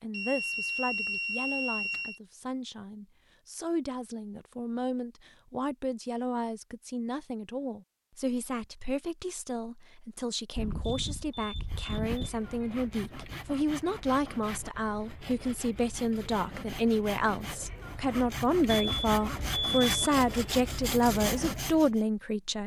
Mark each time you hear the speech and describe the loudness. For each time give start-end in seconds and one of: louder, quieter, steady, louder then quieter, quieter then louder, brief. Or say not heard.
0.0-22.6 louder.